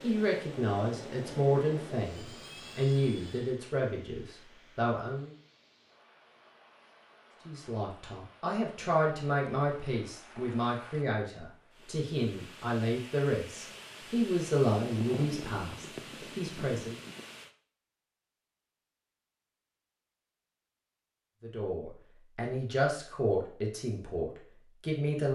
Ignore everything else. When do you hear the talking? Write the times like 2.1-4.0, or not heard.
0.0-5.3, 7.5-16.9, 21.4-25.2.